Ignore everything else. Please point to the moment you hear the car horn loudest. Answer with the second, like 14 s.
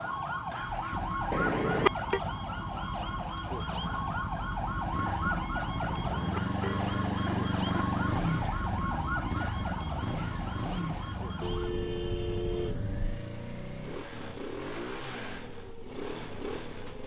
2 s.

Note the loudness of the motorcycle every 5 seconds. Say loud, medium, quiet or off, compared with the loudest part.
medium, loud, medium, medium.